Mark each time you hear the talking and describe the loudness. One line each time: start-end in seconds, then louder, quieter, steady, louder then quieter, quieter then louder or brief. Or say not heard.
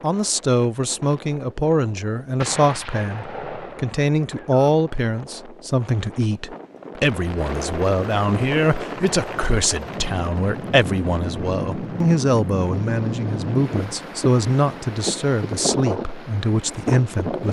0.0-17.4 steady.